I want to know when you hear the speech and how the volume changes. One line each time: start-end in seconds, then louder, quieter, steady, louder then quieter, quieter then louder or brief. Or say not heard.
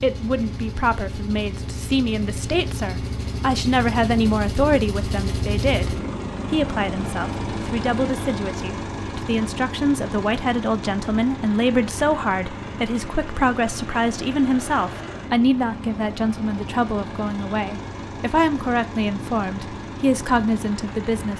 0.0-21.3 steady.